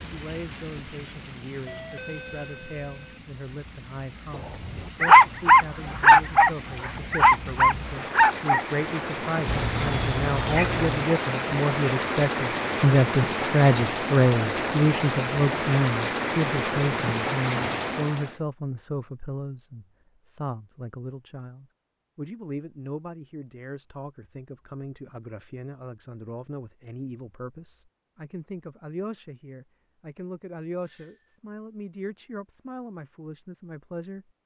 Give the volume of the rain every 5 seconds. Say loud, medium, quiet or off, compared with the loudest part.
quiet, medium, loud, loud, off, off, off.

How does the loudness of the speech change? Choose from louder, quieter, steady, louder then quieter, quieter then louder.
louder then quieter.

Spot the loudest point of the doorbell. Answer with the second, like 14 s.
2 s.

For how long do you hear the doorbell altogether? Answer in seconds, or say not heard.
2 s.